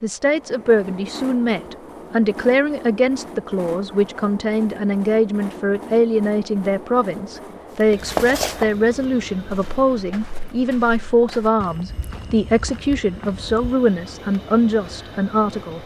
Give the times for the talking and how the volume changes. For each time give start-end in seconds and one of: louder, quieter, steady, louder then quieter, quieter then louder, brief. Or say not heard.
0.0-15.8 steady.